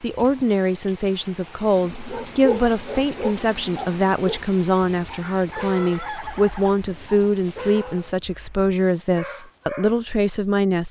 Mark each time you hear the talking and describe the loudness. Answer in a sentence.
The talking can be heard from 0.0 to 10.8 s, at a steady volume.